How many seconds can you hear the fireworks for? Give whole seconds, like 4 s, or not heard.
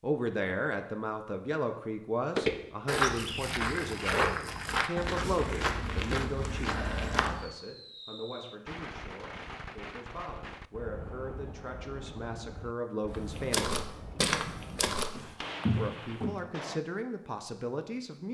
9 s.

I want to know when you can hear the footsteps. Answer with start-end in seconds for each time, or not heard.
2.4-7.5, 13.1-16.4.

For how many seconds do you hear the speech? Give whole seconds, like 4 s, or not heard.
16 s.